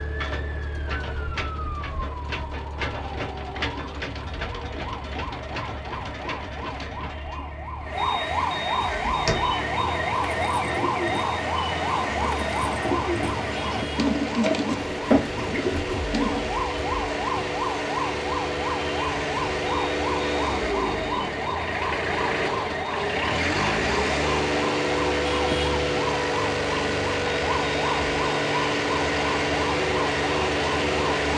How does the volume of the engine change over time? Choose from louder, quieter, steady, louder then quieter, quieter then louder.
louder.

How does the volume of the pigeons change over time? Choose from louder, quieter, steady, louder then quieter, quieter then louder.
louder.